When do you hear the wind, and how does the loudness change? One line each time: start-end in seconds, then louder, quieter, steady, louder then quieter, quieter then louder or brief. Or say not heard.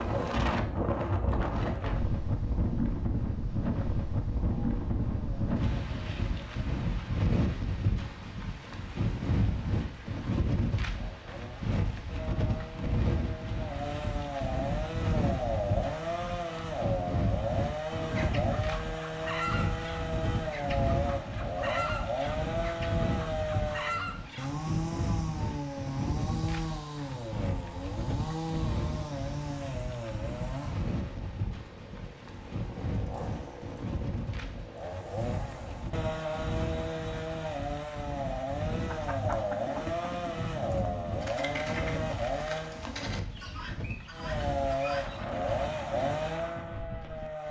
0.0-47.4 quieter.